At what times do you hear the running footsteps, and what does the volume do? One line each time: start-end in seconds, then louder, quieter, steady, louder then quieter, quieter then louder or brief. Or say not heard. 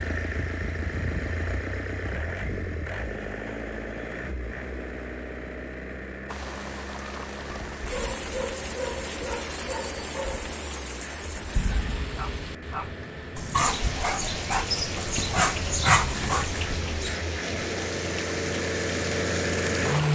not heard.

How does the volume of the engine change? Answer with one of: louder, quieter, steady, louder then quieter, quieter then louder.
quieter then louder.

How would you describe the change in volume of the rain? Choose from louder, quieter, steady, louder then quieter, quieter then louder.
steady.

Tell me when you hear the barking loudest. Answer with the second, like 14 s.
16 s.